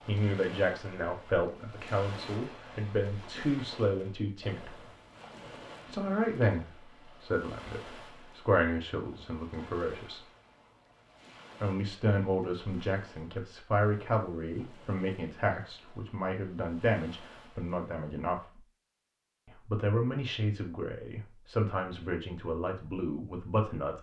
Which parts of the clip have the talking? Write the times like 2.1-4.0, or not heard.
0.1-4.8, 5.8-10.2, 11.6-18.6, 19.4-23.9.